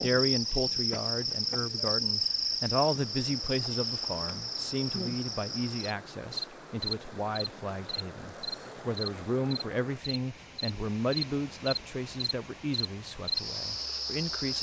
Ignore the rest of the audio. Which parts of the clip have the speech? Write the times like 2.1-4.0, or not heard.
0.0-14.5.